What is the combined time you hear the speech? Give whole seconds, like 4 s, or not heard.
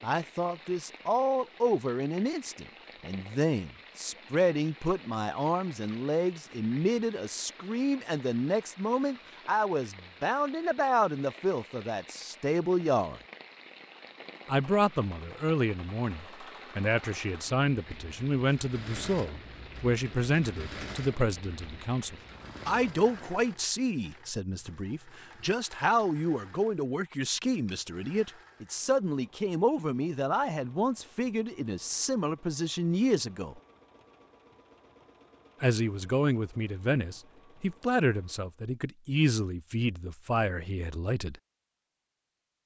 38 s.